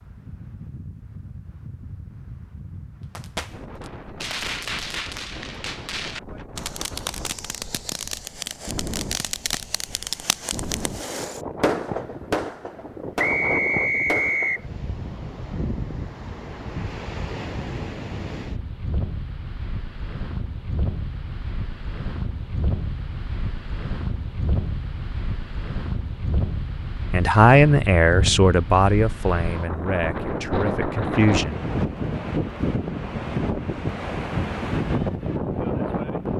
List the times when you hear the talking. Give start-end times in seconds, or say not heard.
27.1-31.6.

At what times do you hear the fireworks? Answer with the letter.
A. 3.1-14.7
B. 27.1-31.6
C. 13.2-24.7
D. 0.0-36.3
A.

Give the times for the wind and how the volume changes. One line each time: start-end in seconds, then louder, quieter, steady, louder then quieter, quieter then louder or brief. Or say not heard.
0.0-36.3 louder.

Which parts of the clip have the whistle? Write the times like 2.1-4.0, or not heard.
13.2-14.7.